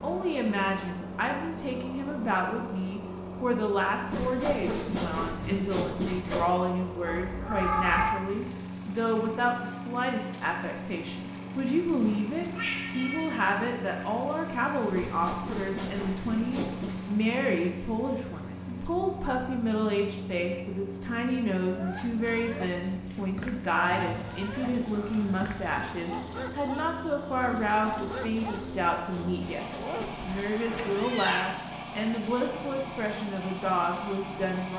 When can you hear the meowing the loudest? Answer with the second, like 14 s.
8 s.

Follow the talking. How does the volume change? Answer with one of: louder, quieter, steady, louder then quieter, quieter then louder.
steady.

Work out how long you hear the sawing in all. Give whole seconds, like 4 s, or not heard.
7 s.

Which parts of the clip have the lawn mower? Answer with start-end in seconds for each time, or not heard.
0.0-34.7.